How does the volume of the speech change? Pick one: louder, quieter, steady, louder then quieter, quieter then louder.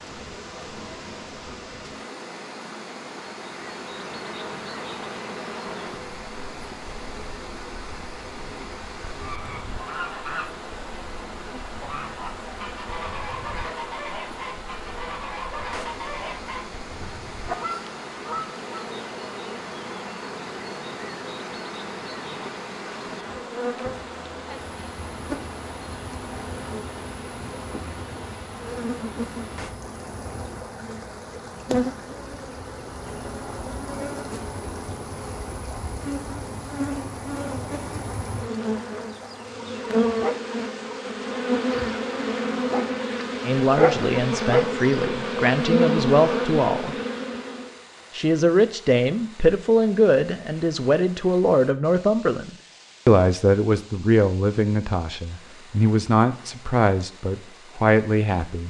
steady.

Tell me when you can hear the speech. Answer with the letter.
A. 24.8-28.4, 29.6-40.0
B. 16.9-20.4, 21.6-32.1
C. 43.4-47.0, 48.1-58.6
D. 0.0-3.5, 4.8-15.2
C.